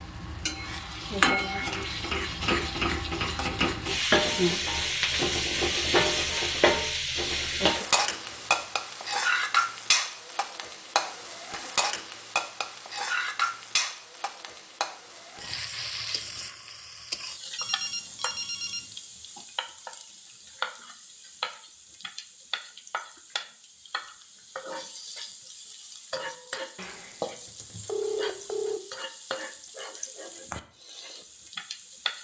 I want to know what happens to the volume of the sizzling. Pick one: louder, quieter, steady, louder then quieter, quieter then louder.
quieter.